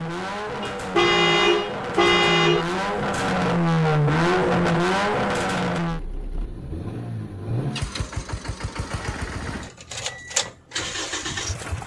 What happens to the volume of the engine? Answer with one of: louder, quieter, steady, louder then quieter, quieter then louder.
louder then quieter.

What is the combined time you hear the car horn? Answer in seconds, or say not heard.
2 s.